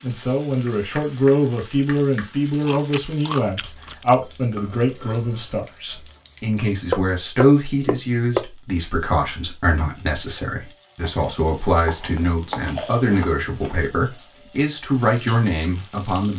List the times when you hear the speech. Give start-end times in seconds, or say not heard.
0.0-16.3.